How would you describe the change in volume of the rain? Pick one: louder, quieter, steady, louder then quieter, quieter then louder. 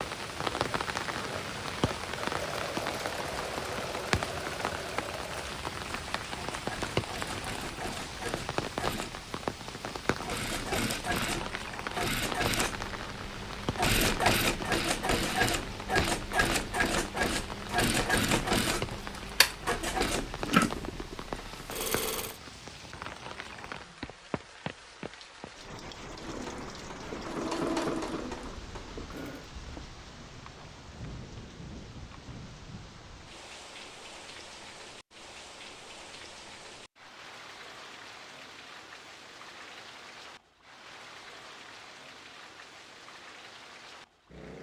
quieter.